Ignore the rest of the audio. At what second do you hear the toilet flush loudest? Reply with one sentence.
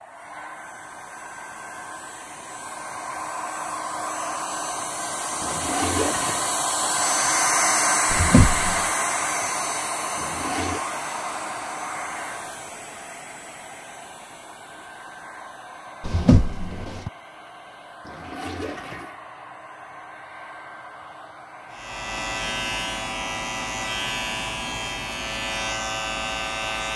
The loudest moment of the toilet flush is at 6 seconds.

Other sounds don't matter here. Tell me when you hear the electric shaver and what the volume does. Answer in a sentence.
You can hear the electric shaver from 21.7 to 26.9 s, at a steady volume.